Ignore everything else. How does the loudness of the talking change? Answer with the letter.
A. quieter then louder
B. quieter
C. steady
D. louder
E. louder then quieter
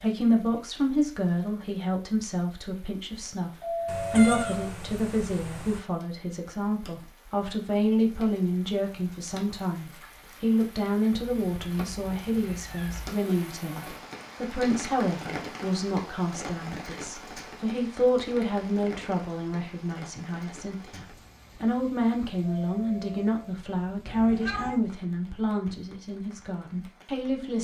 C.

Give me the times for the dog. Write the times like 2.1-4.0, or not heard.
not heard.